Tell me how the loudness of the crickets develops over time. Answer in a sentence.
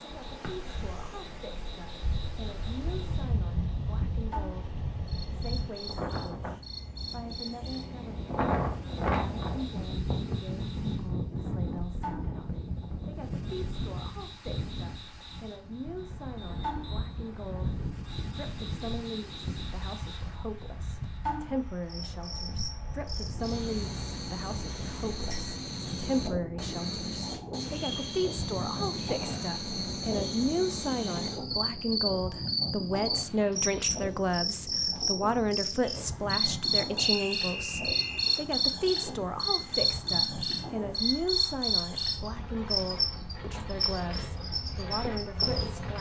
The loudness of the crickets goes up.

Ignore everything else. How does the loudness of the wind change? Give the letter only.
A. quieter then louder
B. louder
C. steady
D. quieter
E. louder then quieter
D.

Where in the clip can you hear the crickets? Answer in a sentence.
The crickets can be heard from 0.0 to 45.9 s.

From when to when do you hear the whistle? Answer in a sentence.
You can hear the whistle from 16.4 to 17.1 s and from 37.0 to 38.5 s.